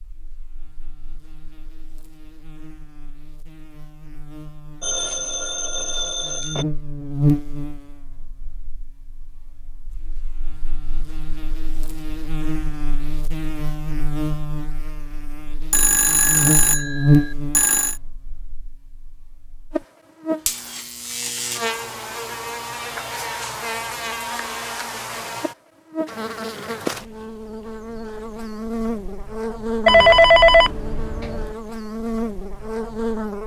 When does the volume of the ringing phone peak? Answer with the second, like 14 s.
30 s.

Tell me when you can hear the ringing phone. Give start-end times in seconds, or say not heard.
4.8-6.7, 15.7-17.9, 29.9-31.6.